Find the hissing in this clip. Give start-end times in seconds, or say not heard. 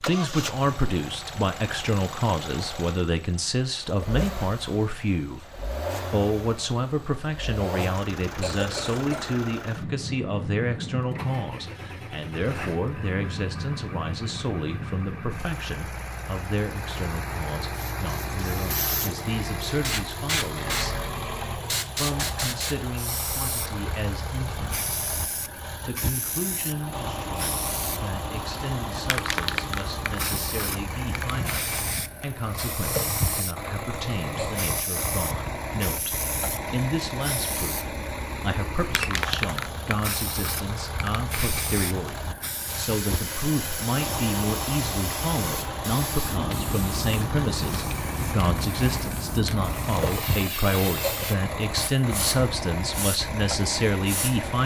17.8-54.5.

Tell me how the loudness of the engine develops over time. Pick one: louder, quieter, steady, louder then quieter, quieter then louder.
steady.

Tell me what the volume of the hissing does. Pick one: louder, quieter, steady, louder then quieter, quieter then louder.
steady.